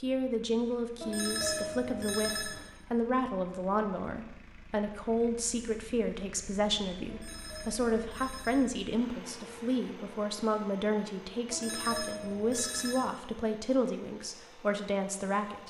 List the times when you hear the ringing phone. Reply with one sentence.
You can hear the ringing phone from 1.0 to 2.6 s, from 7.0 to 8.7 s and from 11.5 to 13.1 s.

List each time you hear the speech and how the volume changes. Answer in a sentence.
You can hear the speech from 0.0 to 15.6 s, at a steady volume.